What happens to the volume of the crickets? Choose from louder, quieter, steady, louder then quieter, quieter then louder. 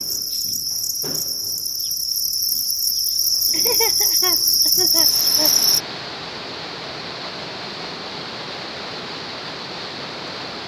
louder.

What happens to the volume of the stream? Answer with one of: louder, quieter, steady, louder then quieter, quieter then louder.
steady.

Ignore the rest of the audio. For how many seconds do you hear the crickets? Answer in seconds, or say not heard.
6 s.